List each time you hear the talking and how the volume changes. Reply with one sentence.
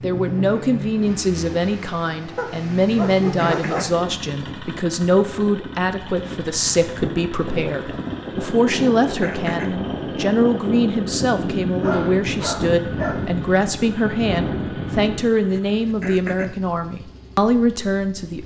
The talking can be heard from 0.0 to 18.4 s, at a steady volume.